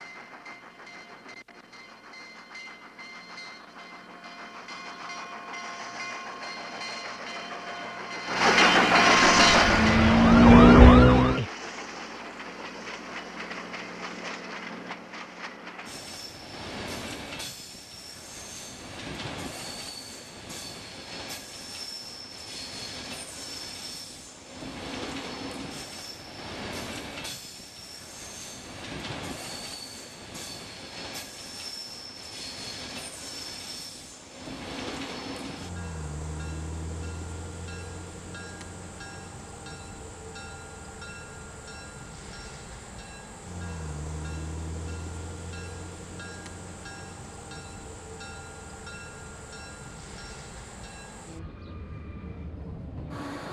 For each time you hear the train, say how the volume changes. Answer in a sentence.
The train can be heard from 0.0 to 53.4 s, getting quieter.